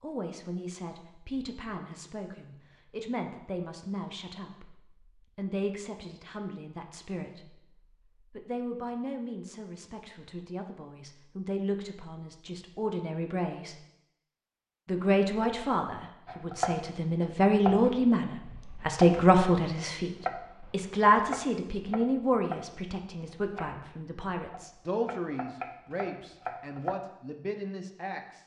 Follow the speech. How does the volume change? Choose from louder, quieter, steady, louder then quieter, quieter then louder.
louder then quieter.